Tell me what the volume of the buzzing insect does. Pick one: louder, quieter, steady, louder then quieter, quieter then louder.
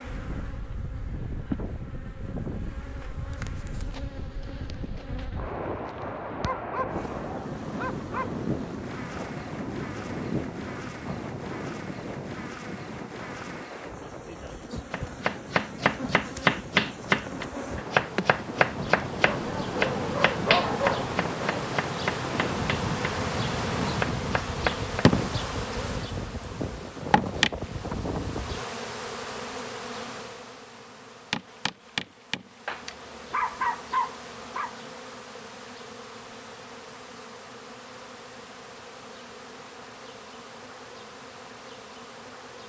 louder then quieter.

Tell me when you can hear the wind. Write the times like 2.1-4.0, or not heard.
0.0-28.6.